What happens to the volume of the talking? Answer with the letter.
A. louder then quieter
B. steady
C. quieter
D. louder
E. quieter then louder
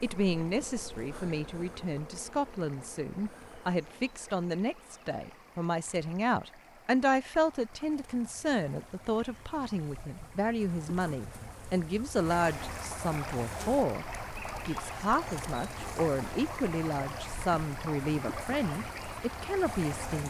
B.